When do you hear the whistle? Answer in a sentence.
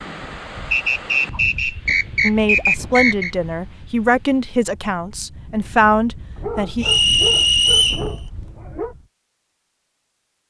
You can hear the whistle from 0.7 to 3.3 s and from 6.8 to 8.1 s.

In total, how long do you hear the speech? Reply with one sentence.
You can hear the speech for 5 seconds altogether.